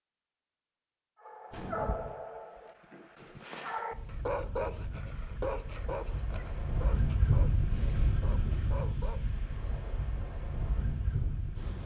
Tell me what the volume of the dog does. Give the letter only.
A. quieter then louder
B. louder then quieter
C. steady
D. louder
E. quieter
E.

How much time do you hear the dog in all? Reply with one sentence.
You can hear the dog for 8 seconds altogether.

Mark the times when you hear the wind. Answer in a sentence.
The wind can be heard from 3.9 to 11.8 s.